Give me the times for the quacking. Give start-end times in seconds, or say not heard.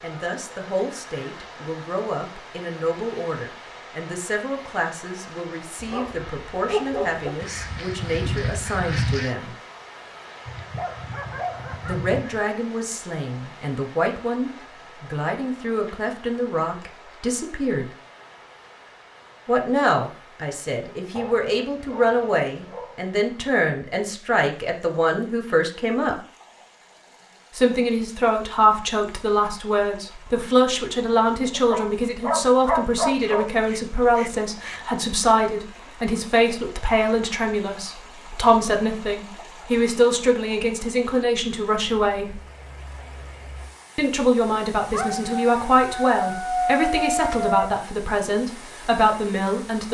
7.4-9.3, 33.1-34.9.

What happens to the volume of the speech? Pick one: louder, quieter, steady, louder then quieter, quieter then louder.
louder.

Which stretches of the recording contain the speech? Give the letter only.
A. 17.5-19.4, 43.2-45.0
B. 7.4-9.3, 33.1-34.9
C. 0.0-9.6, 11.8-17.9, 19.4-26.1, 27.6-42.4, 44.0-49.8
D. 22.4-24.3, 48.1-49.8
C.